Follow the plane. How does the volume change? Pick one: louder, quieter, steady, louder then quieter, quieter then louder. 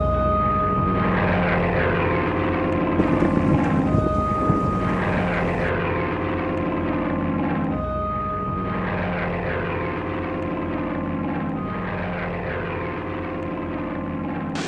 quieter.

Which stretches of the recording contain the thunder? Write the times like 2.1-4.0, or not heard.
3.0-5.7.